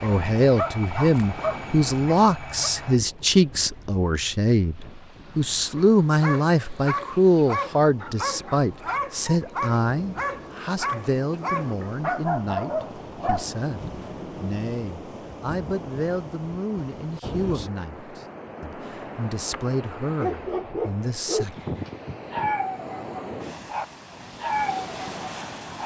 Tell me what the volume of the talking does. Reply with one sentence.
The loudness of the talking goes down.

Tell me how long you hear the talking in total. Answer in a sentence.
You can hear the talking for 22 seconds altogether.